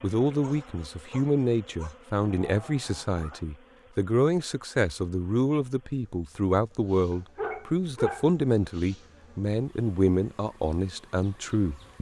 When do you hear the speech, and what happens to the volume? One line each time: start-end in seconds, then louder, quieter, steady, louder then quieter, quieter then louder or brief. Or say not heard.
0.0-11.9 steady.